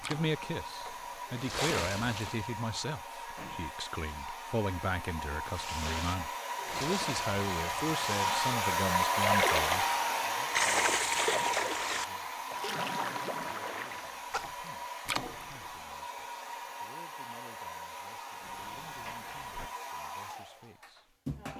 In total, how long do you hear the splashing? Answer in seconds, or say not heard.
13 s.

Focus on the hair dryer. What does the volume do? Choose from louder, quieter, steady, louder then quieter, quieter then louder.
louder then quieter.